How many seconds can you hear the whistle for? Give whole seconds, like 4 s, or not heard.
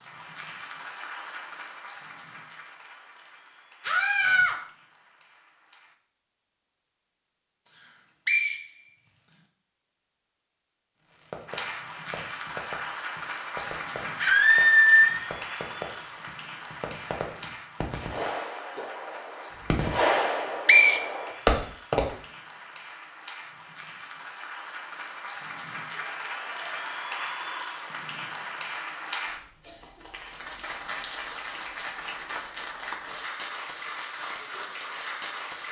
3 s.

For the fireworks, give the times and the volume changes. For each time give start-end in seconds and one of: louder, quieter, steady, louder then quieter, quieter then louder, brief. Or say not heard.
11.1-22.1 louder.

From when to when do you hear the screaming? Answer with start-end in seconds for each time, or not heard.
3.8-4.5, 14.2-15.2, 25.9-27.8.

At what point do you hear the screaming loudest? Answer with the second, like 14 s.
15 s.